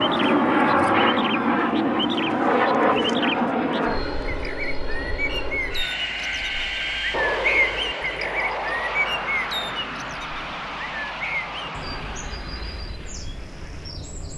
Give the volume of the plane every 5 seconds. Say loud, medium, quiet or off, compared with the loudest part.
loud, medium, quiet.